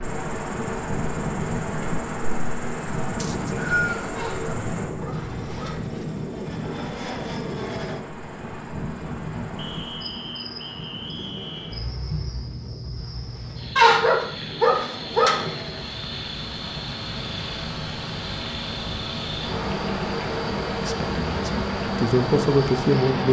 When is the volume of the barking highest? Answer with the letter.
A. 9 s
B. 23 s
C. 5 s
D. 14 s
D.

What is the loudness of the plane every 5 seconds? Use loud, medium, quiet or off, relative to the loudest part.
loud, loud, medium, loud, loud.